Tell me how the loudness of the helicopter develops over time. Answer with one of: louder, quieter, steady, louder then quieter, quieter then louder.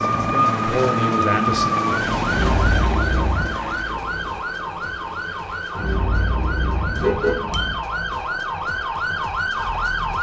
quieter.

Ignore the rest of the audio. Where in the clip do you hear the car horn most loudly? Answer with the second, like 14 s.
7 s.